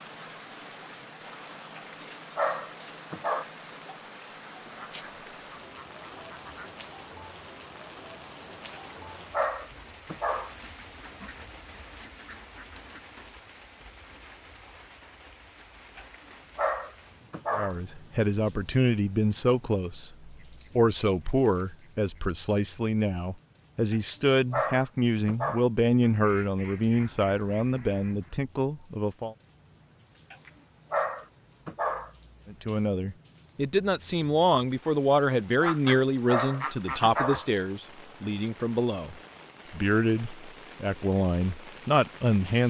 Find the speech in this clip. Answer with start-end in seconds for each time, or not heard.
17.5-29.4, 32.5-42.6.